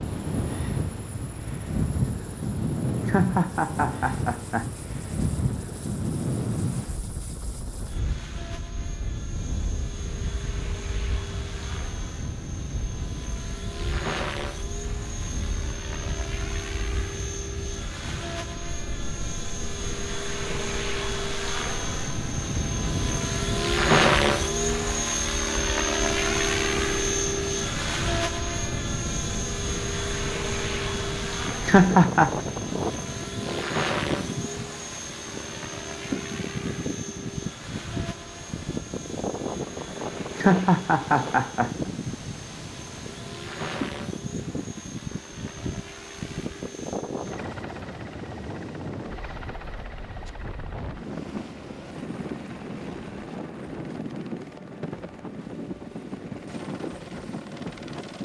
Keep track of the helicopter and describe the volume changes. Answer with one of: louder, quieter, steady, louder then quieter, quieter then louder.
louder then quieter.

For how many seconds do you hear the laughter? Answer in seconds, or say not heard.
4 s.